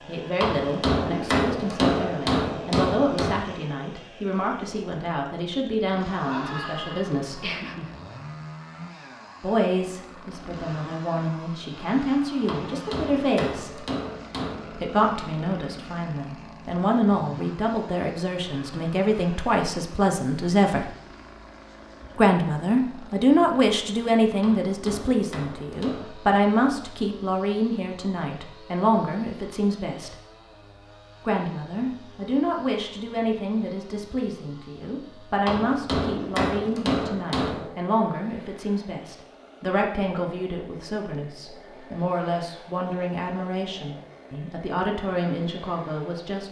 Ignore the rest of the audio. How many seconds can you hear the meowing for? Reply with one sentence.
You can hear the meowing for 2 seconds altogether.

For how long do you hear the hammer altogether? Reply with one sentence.
You can hear the hammer for 9 seconds altogether.